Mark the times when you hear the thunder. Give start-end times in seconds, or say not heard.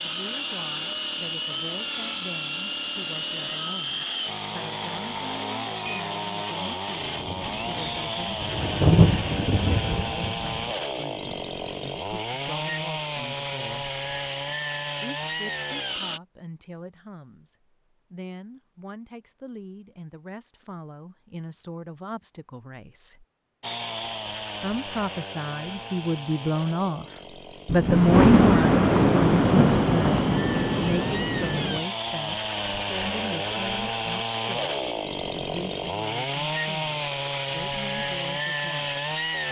7.2-10.7, 27.6-31.8.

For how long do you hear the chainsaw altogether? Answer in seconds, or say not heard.
32 s.